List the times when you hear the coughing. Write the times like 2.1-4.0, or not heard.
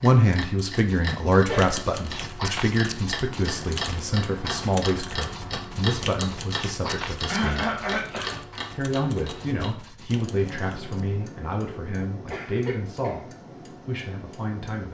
1.0-1.7, 7.3-8.3, 12.3-13.2.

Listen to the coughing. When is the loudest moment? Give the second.
8 s.